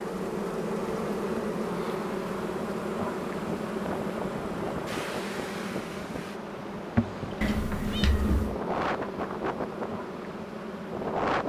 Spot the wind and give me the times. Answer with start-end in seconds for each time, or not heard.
3.5-11.4.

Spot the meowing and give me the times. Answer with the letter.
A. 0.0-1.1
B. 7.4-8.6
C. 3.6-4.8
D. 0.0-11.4
B.